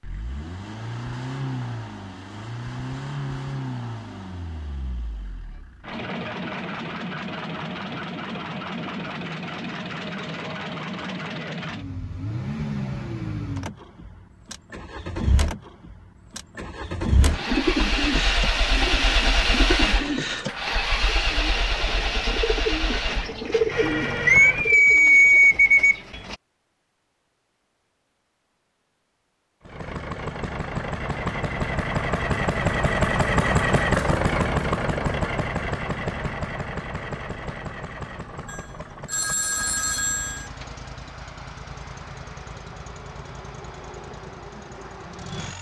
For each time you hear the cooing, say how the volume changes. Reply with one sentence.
You can hear the cooing from 17.2 to 26.4 s, getting quieter then louder.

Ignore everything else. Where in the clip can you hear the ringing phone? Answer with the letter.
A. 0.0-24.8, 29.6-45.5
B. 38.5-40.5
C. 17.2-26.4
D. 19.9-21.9
B.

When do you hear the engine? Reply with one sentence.
You can hear the engine from 0.0 to 24.8 s and from 29.6 to 45.5 s.